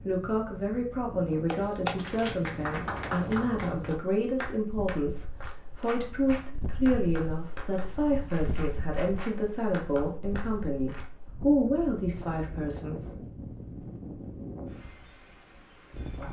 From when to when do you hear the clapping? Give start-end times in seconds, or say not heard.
1.5-11.1.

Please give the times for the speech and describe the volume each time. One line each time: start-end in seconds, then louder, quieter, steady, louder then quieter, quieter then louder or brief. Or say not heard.
0.1-13.2 steady.